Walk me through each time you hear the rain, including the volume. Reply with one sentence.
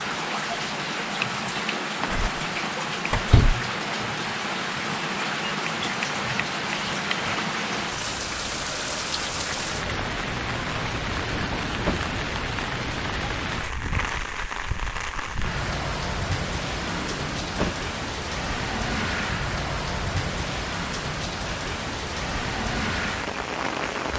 The rain can be heard from 0.0 to 24.1 s, at a steady volume.